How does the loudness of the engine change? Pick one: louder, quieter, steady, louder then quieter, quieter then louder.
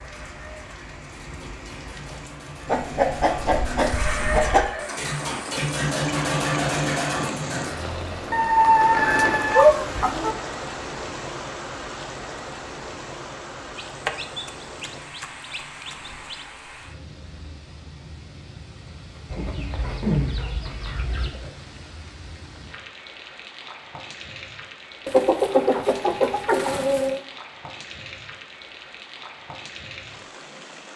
louder.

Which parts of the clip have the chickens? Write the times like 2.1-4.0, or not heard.
2.6-4.7, 8.3-10.3, 13.8-16.4, 19.2-21.3, 25.1-27.2.